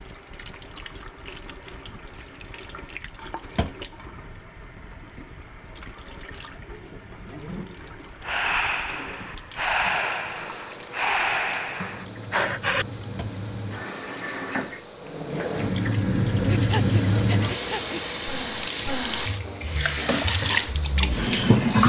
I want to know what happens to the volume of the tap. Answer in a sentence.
The volume of the tap goes up.